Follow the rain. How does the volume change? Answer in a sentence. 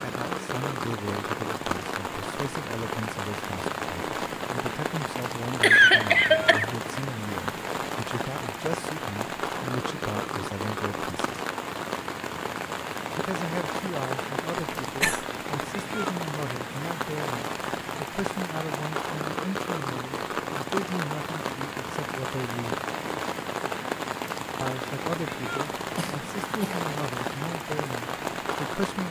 The volume of the rain stays about the same.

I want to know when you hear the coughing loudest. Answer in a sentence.
The loudest moment of the coughing is at 6 seconds.